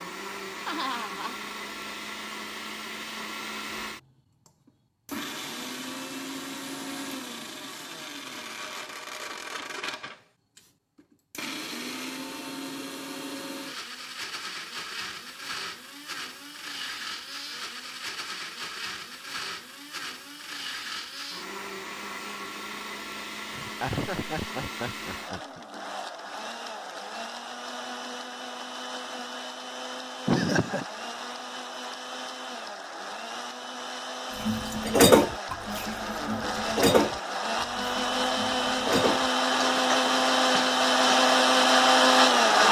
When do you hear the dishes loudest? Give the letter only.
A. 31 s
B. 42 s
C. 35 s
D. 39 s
C.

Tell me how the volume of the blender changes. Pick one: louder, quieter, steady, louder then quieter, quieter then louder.
louder.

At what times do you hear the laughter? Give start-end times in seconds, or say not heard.
0.6-1.4, 23.5-25.6, 30.2-30.9.